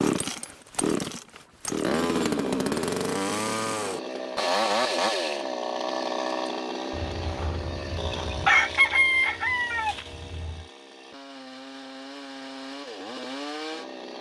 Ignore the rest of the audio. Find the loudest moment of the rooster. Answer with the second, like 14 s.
9 s.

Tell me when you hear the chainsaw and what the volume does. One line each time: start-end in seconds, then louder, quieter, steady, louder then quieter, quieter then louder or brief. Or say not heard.
0.0-14.1 quieter.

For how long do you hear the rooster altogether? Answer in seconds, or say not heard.
4 s.